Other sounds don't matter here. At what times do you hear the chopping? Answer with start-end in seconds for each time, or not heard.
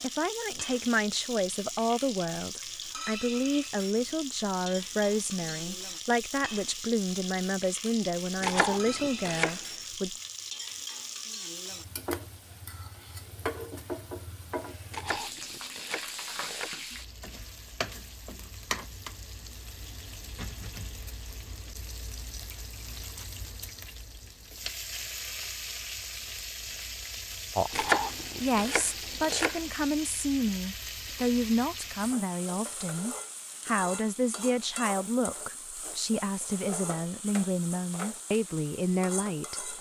8.4-9.6, 14.9-16.7, 27.7-29.6.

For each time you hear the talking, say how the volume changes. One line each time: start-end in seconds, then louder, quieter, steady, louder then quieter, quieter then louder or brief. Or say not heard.
0.0-10.2 steady
27.6-39.7 steady.